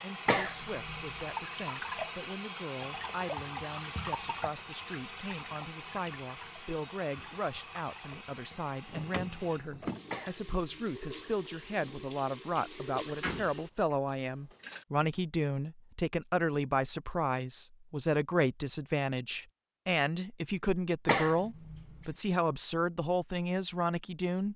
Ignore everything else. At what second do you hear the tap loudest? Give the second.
2 s.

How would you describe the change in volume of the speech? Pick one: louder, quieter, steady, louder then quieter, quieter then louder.
louder.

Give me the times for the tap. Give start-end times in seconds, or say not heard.
0.0-14.8.